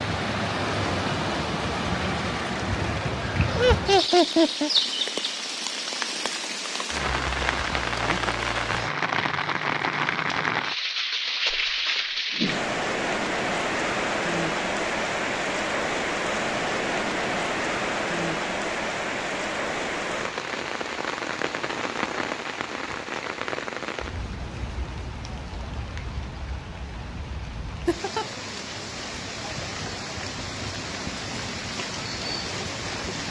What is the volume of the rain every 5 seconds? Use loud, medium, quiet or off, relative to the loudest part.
loud, loud, loud, loud, medium, medium, medium.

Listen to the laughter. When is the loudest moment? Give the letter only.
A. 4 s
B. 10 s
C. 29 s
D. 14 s
A.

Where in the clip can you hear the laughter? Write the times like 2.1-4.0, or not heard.
3.5-4.7, 27.9-28.3.